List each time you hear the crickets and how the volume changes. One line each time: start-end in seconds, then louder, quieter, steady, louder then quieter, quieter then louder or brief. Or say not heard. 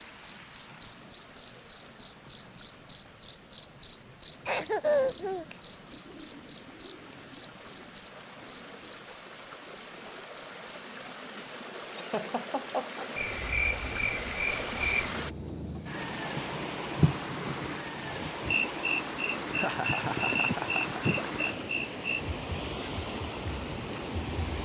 0.0-24.5 quieter.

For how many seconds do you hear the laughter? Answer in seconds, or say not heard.
4 s.